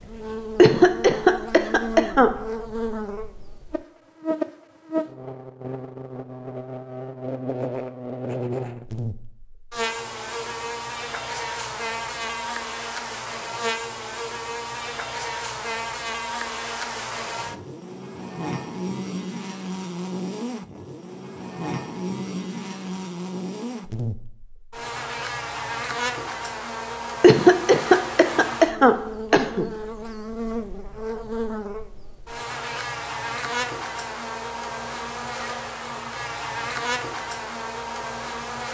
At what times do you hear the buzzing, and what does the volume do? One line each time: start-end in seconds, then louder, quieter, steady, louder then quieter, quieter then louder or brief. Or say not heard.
0.0-38.7 steady.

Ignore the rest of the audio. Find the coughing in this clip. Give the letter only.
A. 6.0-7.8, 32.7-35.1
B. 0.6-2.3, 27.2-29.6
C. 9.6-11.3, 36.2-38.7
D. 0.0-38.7
B.